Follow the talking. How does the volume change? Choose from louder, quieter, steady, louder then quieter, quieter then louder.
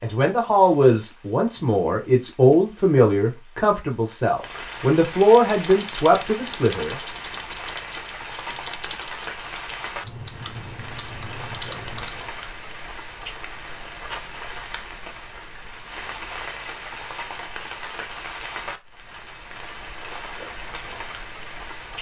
steady.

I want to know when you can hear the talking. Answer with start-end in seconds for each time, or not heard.
0.0-7.0.